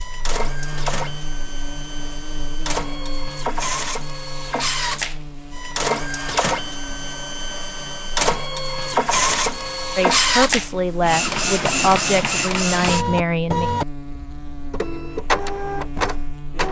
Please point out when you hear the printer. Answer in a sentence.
The printer can be heard from 0.0 to 16.6 s.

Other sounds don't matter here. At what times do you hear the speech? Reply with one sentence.
You can hear the speech from 9.9 to 13.7 s.